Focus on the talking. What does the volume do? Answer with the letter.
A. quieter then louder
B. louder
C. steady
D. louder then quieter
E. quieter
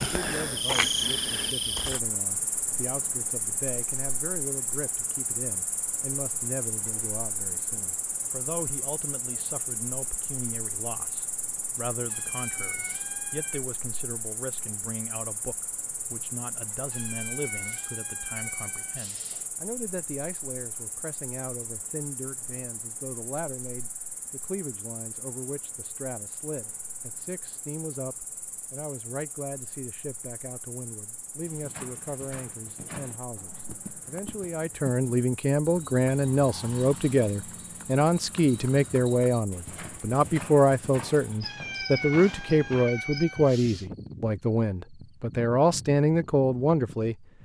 B.